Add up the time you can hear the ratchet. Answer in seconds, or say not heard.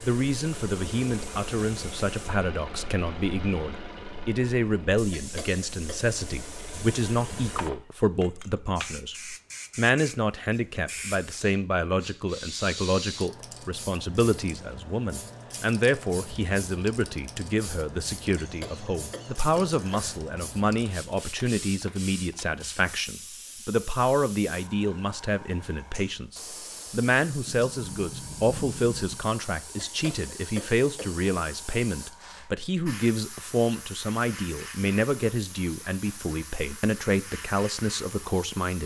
not heard.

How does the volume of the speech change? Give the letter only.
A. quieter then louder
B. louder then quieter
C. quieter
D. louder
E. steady
E.